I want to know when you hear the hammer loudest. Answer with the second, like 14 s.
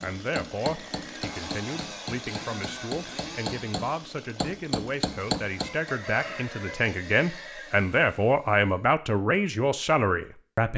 5 s.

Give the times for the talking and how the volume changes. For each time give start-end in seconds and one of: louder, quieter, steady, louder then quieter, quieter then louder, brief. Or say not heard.
0.0-10.7 louder.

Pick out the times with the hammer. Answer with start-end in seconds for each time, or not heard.
0.0-5.9.